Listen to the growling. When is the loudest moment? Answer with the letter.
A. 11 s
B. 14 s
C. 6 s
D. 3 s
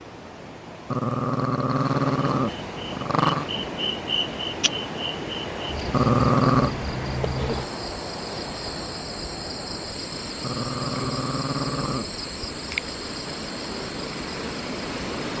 C.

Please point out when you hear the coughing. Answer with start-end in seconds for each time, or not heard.
not heard.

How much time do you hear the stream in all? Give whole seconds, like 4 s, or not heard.
15 s.